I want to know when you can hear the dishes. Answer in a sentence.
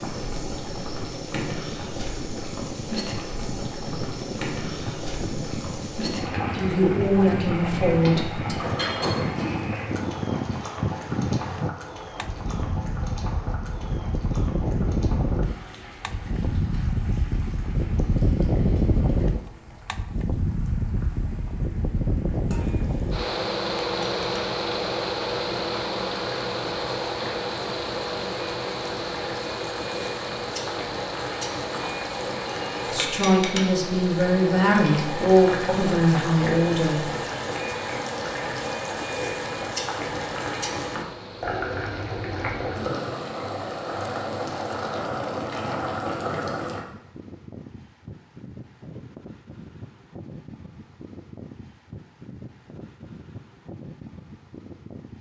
You can hear the dishes from 8.6 to 9.8 s.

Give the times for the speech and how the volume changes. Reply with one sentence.
You can hear the speech briefly from 6.5 to 8.6 s; and from 32.9 to 37.1 s, at a steady volume.